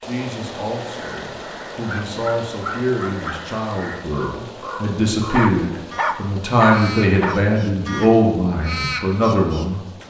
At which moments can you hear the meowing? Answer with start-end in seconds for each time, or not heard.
not heard.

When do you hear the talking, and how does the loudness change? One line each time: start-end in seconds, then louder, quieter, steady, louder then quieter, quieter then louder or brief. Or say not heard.
0.1-9.8 louder.